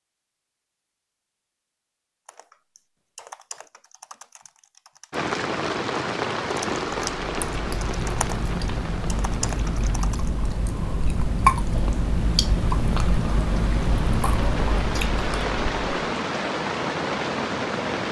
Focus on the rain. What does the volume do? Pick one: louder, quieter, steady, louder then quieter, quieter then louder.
quieter then louder.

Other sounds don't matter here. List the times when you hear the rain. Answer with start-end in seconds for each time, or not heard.
5.1-18.0.